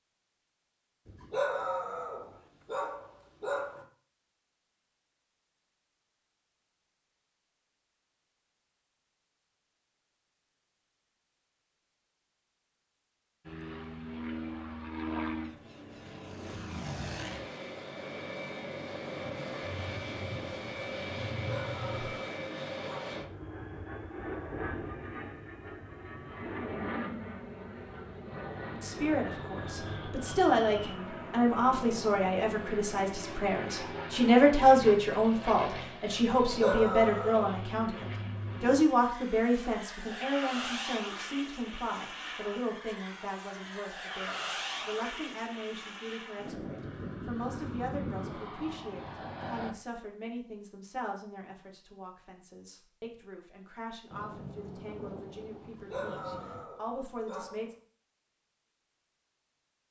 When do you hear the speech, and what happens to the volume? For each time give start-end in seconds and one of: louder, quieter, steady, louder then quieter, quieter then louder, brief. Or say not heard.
28.8-57.8 quieter.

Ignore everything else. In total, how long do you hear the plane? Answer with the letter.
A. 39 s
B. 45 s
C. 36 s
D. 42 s
C.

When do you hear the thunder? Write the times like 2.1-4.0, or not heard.
19.2-22.2, 54.1-56.7.